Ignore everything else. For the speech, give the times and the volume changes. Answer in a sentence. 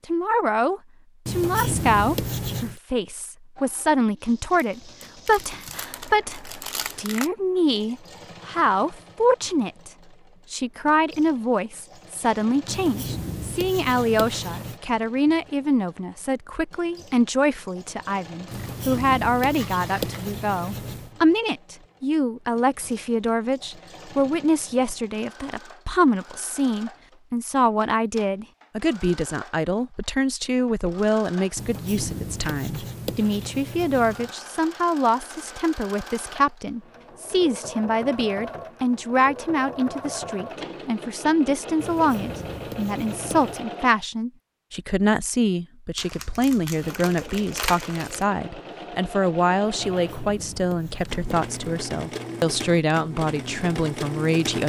You can hear the speech from 0.1 to 9.9 s, at a steady volume; and from 10.5 to 54.6 s, at a steady volume.